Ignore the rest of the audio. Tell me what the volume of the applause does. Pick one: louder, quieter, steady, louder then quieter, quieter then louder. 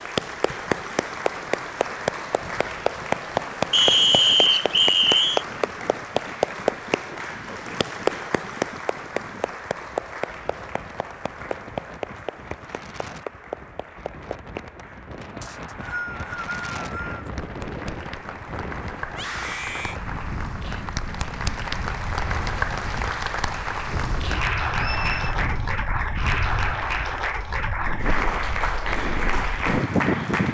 quieter then louder.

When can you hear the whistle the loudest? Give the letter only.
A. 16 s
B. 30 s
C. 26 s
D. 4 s
D.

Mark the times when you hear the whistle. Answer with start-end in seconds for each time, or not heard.
3.7-5.5, 15.4-17.3, 24.8-25.4.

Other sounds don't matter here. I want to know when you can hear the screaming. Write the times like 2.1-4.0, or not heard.
19.1-20.0.